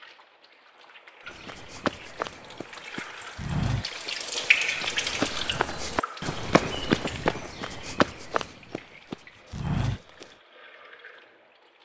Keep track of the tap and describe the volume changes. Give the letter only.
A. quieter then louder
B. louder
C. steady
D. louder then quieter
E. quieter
D.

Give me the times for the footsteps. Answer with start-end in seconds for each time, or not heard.
1.2-10.3.